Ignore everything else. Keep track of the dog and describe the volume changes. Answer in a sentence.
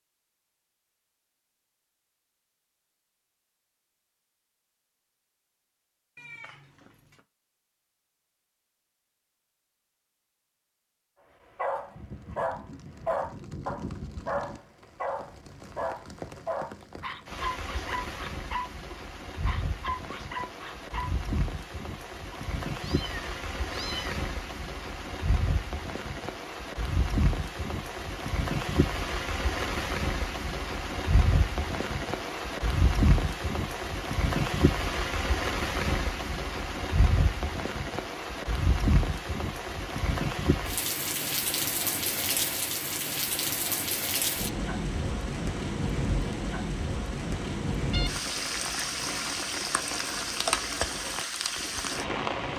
The loudness of the dog goes down.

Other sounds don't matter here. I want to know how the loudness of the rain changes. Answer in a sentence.
The loudness of the rain goes up.